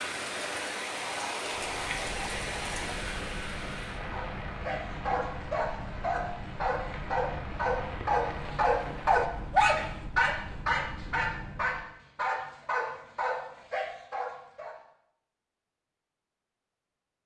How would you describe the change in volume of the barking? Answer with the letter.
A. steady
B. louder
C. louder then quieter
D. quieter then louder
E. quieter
C.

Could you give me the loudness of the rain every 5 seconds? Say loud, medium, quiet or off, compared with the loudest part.
loud, medium, off, off.